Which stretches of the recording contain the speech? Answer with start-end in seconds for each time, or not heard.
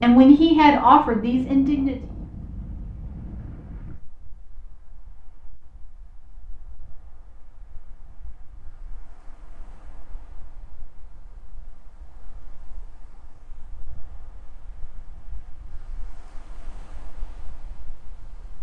0.0-2.0.